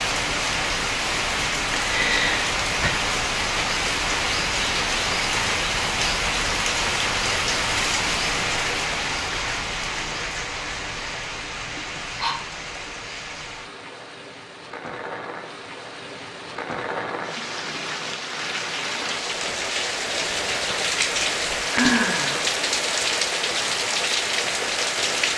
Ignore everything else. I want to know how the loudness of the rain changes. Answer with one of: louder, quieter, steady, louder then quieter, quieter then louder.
quieter then louder.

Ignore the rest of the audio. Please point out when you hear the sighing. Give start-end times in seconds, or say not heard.
1.8-2.9, 11.8-12.3, 21.7-22.5.